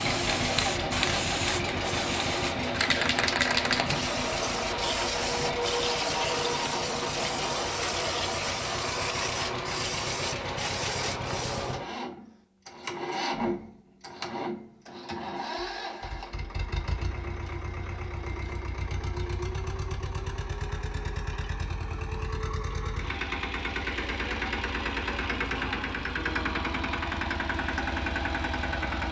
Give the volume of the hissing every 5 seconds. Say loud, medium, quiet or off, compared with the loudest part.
loud, loud, medium, off, off, off.